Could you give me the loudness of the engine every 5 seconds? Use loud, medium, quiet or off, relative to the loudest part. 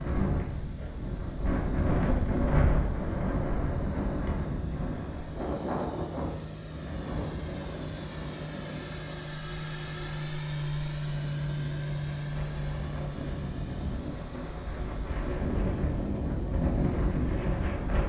quiet, medium, loud, quiet.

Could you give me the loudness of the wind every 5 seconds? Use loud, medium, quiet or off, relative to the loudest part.
loud, medium, medium, loud.